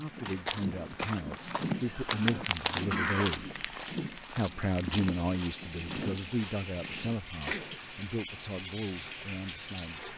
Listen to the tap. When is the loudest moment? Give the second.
7 s.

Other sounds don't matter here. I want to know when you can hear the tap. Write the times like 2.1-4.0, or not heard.
0.0-10.1.